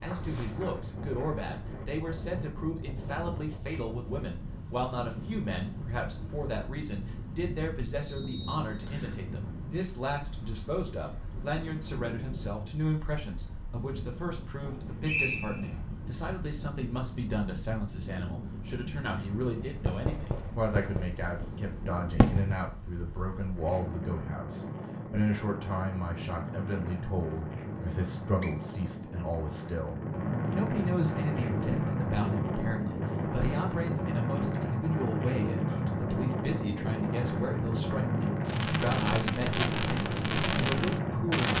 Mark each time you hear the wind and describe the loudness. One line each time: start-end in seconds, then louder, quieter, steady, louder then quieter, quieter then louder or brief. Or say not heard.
0.0-41.5 louder.